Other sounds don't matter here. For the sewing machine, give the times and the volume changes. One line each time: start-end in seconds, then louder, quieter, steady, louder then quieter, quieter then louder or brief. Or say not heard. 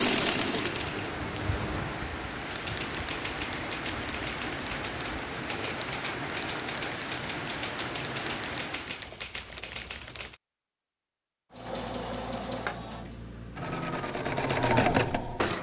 0.0-2.0 brief
11.5-15.5 louder.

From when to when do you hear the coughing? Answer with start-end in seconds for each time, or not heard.
not heard.